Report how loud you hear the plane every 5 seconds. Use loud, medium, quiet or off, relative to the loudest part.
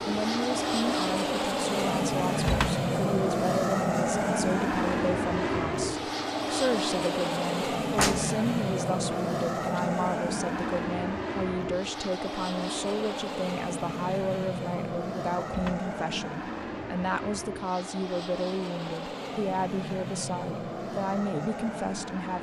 loud, loud, medium, medium, medium.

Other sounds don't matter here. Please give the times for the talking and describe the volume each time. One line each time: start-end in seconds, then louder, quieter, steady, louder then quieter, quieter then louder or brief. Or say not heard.
0.1-22.3 steady.